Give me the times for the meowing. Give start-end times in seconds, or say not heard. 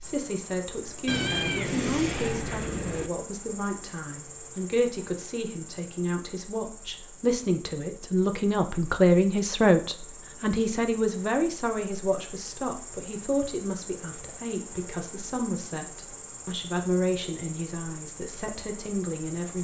1.1-3.1.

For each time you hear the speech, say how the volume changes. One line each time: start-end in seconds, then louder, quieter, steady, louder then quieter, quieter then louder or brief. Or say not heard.
0.0-19.5 louder then quieter.